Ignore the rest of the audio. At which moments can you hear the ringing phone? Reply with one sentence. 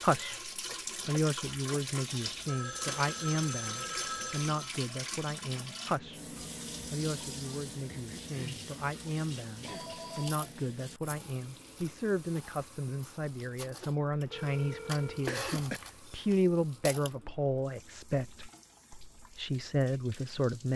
You can hear the ringing phone from 2.1 to 4.7 s, from 9.7 to 10.3 s and from 14.2 to 15.3 s.